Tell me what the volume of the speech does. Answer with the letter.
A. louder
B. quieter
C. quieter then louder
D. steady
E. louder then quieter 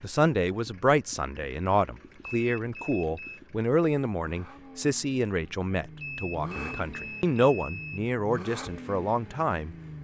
D.